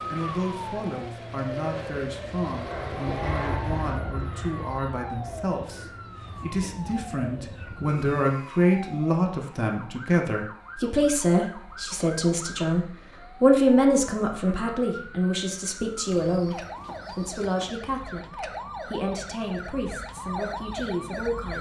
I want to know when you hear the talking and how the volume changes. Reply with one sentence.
You can hear the talking from 0.0 to 21.5 s, getting louder then quieter.